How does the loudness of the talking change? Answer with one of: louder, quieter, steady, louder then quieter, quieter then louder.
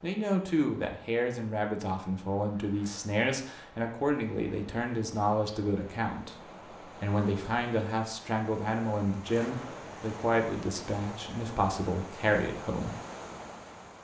steady.